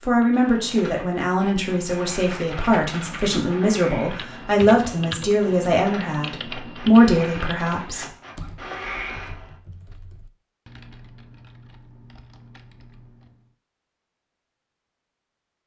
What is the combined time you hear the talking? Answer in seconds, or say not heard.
8 s.